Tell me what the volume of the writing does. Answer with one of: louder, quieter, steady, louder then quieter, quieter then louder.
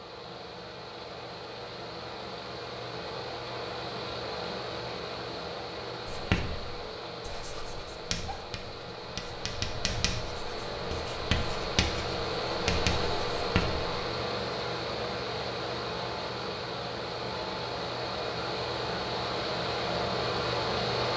louder.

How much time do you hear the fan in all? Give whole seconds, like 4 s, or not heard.
21 s.